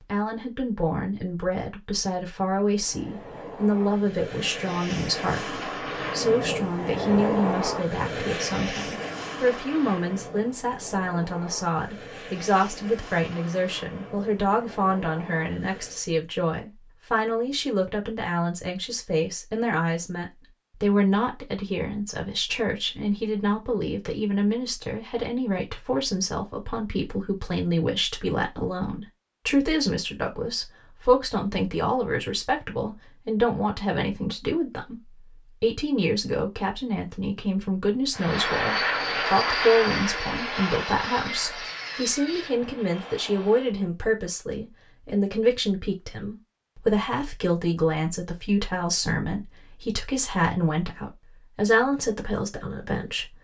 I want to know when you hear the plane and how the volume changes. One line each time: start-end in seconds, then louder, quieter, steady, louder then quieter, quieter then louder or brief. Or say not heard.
2.6-16.1 louder then quieter
38.1-43.8 quieter.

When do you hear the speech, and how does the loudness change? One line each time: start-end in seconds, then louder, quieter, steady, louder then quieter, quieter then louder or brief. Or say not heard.
0.1-53.3 steady.